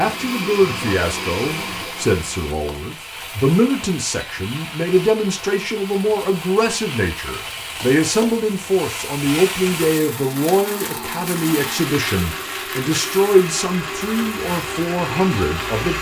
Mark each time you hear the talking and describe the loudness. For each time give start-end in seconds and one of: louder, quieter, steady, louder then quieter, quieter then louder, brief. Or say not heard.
0.0-15.9 steady.